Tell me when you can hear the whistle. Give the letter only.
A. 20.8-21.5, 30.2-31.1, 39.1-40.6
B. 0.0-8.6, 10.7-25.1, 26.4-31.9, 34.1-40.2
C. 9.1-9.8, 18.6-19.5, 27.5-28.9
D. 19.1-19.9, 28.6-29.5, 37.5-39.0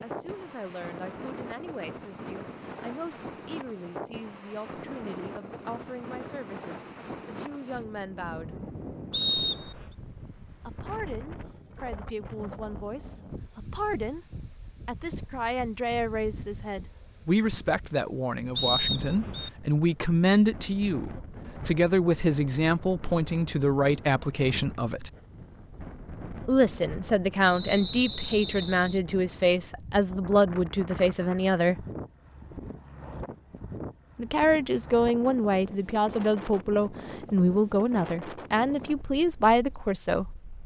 C.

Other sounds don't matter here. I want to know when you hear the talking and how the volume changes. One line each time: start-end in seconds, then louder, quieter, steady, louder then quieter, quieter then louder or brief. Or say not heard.
0.0-8.6 steady
10.7-25.1 louder
26.4-31.9 steady
34.1-40.2 steady.